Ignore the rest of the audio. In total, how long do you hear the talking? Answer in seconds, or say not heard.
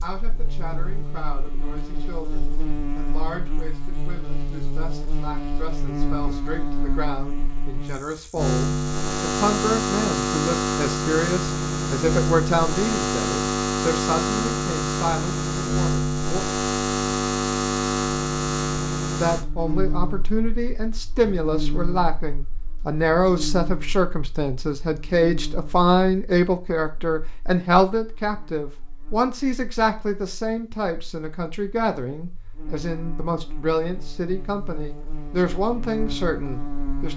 34 s.